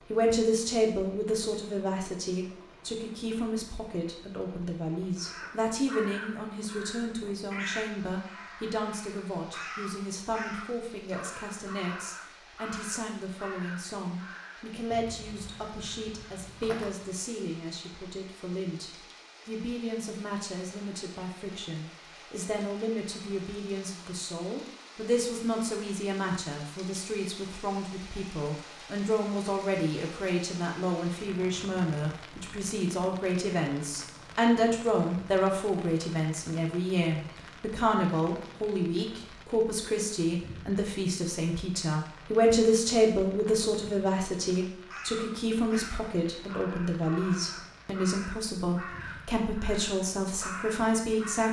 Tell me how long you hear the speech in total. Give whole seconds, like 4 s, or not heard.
51 s.